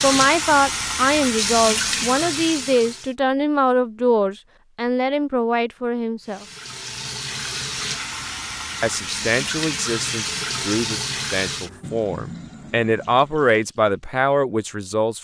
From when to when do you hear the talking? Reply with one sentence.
The talking can be heard from 0.0 to 6.5 s and from 8.8 to 15.1 s.